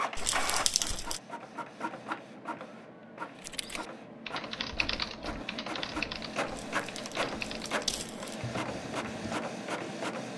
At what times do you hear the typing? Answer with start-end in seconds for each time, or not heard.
3.4-9.4.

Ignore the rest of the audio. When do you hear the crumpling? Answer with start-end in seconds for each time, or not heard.
0.1-1.2, 6.5-8.4.